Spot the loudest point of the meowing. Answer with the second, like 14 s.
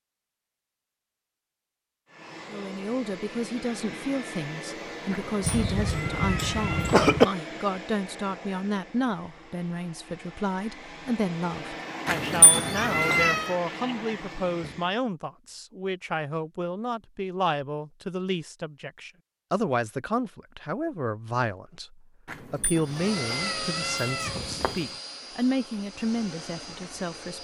13 s.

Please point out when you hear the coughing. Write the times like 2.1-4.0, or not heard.
5.4-7.2.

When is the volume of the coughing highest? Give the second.
7 s.